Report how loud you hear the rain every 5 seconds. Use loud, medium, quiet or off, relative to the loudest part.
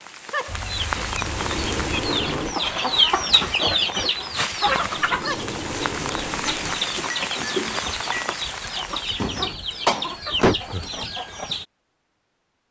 loud, loud, off.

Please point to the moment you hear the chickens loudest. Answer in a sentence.
The volume of the chickens peaks at 3 seconds.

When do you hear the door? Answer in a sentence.
The door can be heard from 0.9 to 2.5 s, from 4.7 to 6.8 s and from 9.2 to 10.6 s.